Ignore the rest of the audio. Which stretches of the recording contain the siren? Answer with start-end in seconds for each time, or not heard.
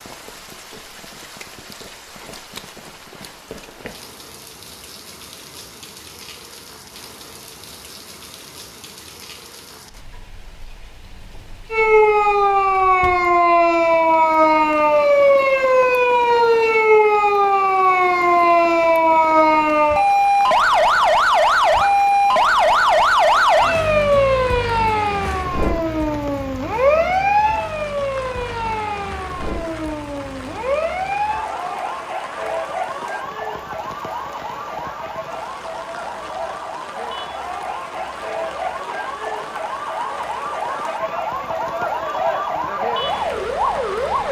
11.7-44.2.